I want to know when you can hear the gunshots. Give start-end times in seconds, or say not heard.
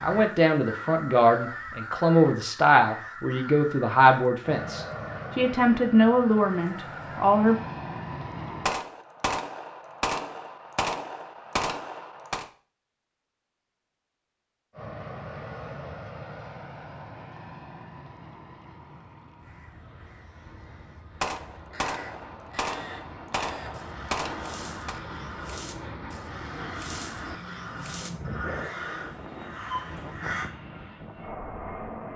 8.7-12.4, 21.2-25.0.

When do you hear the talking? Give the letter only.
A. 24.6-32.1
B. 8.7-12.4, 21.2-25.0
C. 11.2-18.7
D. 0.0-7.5
D.